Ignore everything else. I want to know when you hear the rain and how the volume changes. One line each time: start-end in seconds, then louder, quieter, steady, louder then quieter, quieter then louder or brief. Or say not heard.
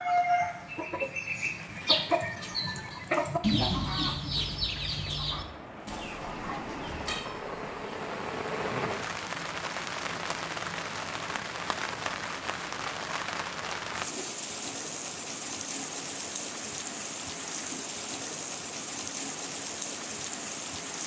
0.0-21.0 louder.